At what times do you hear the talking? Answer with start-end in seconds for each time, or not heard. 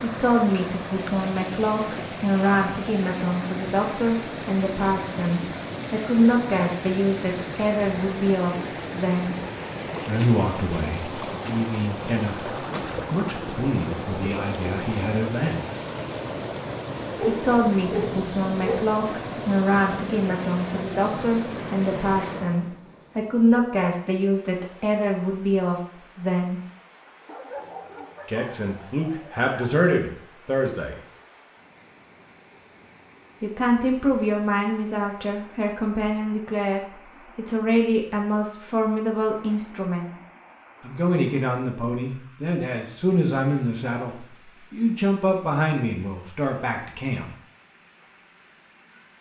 0.0-9.3, 10.1-15.7, 17.2-26.6, 28.2-31.0, 33.4-40.1, 40.8-47.2.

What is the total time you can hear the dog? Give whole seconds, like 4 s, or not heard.
4 s.